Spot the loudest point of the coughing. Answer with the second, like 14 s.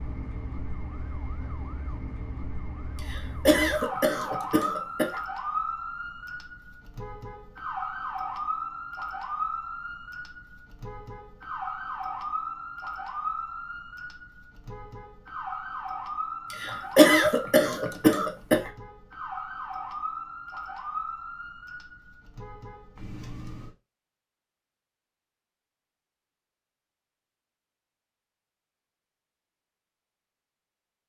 17 s.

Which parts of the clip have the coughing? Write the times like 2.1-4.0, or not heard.
3.1-5.2, 16.5-18.7.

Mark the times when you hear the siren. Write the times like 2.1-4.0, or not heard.
0.0-23.8.